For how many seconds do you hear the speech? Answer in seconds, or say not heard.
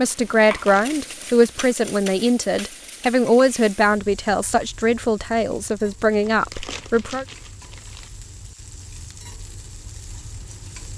7 s.